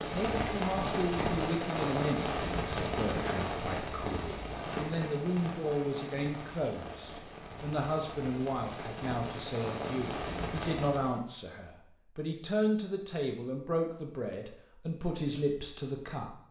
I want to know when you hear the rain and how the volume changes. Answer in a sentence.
You can hear the rain from 0.0 to 11.2 s, getting quieter then louder.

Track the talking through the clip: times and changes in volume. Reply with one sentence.
The talking can be heard from 0.0 to 16.4 s, at a steady volume.